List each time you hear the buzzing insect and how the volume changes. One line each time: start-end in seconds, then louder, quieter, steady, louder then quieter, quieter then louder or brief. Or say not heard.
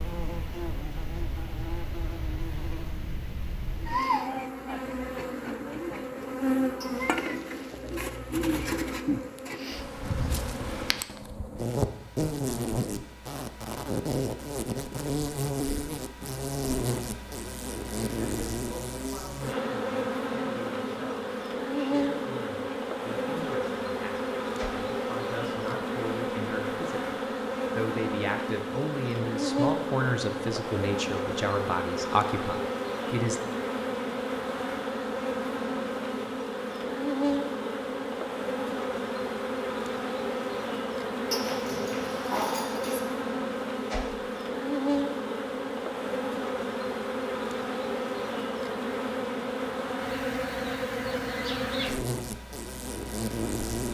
0.0-53.8 steady.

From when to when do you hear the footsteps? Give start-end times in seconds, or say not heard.
not heard.